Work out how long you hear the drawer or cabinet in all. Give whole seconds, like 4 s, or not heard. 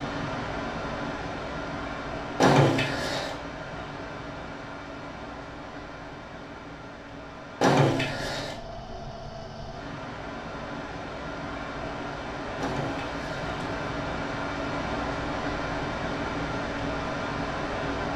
3 s.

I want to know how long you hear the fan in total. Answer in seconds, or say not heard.
18 s.